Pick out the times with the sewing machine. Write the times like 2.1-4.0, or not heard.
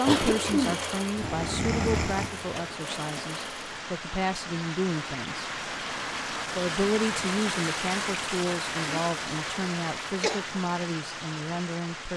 0.0-3.8.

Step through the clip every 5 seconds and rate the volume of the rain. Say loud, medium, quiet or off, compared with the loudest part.
medium, loud, medium.